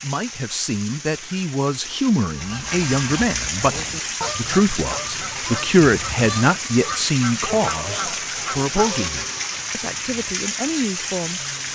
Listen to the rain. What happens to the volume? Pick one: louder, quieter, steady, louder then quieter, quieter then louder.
louder.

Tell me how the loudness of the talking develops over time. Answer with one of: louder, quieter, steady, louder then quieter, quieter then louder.
louder then quieter.